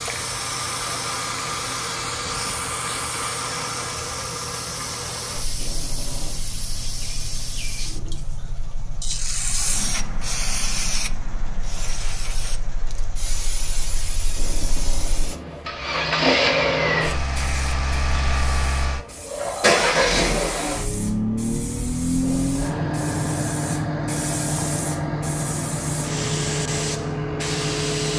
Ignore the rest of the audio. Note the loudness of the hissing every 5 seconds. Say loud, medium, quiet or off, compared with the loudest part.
loud, loud, loud, medium, medium, loud.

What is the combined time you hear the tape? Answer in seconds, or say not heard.
4 s.